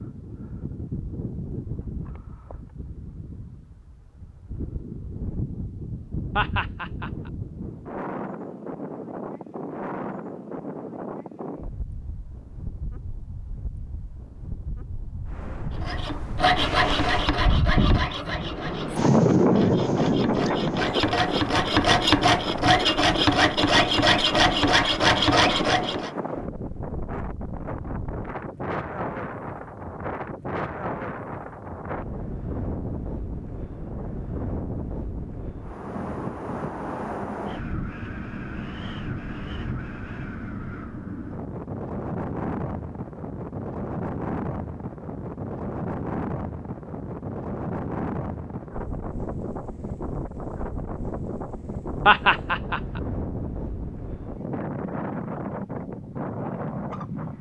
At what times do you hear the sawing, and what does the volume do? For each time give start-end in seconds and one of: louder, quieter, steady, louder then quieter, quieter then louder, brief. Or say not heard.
15.8-26.1 quieter then louder.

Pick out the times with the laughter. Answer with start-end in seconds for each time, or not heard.
6.3-7.3, 52.0-53.0.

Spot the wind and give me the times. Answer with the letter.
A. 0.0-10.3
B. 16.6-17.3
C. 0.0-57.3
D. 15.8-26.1
C.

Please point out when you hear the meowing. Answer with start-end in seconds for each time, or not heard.
16.6-17.3.